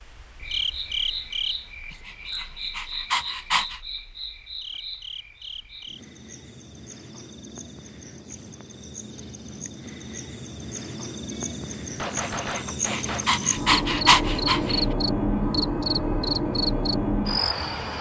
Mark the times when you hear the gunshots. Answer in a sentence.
The gunshots can be heard from 11.3 to 13.3 s.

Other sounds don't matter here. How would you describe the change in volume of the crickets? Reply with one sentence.
The loudness of the crickets goes down, then up.